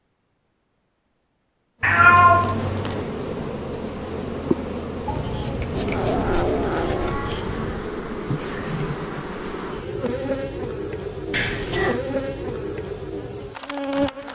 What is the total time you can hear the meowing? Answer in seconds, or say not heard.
5 s.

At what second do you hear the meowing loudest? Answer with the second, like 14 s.
2 s.